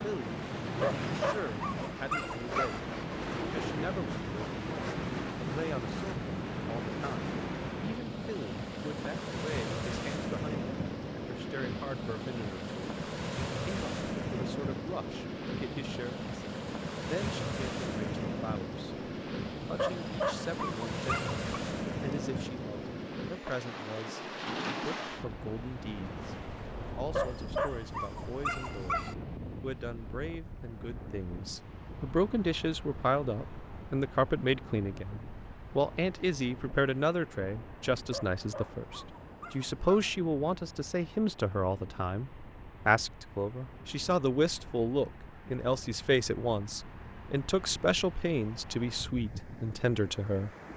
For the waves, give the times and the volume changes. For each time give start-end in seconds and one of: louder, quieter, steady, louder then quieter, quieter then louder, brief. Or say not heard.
0.0-50.7 quieter.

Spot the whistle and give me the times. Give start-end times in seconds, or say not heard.
not heard.